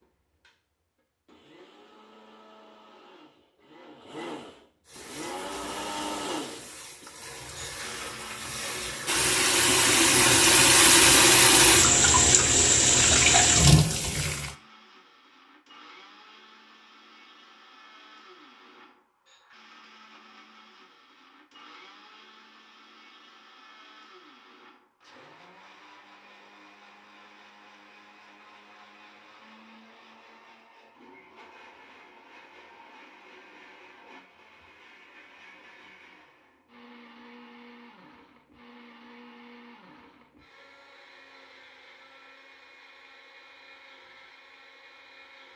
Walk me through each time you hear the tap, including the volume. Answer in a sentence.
The tap can be heard from 4.8 to 14.5 s, getting louder.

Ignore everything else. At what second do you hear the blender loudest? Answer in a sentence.
The loudest moment of the blender is at 6 seconds.